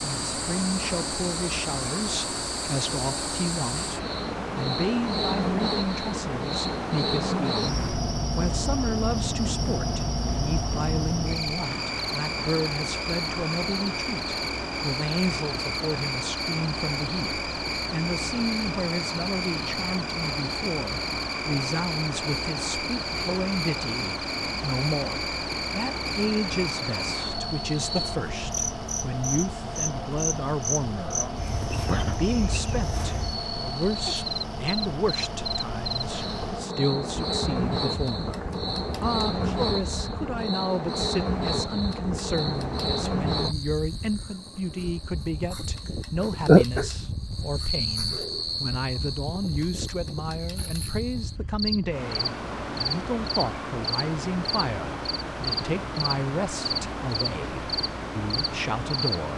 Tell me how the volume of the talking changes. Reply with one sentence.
The loudness of the talking stays about the same.